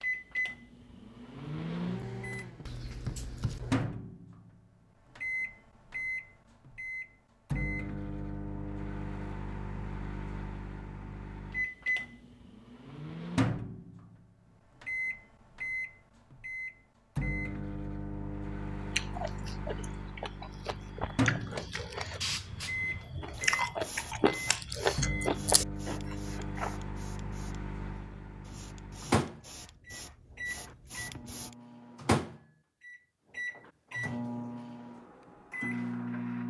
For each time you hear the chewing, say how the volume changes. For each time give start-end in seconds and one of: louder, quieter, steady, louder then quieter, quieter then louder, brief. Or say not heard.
18.9-26.8 louder.